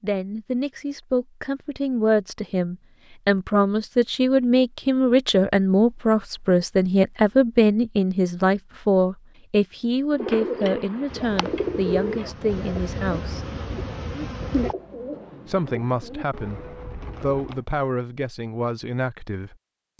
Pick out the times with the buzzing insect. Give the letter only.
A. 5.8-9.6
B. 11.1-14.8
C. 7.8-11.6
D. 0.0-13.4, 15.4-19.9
B.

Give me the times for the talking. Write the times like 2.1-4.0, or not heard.
0.0-13.4, 15.4-19.9.